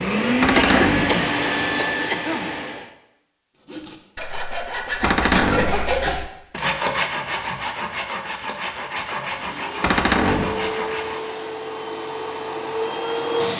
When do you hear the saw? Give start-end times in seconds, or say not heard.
3.6-11.3.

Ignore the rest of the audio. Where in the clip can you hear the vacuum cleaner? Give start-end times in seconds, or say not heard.
0.0-2.9, 9.3-13.5.